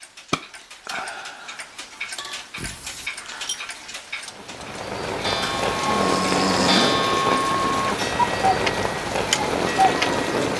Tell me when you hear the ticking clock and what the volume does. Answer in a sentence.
You can hear the ticking clock from 0.0 to 10.2 s, getting louder.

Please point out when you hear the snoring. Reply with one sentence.
The snoring can be heard from 2.5 to 3.1 s and from 5.4 to 7.0 s.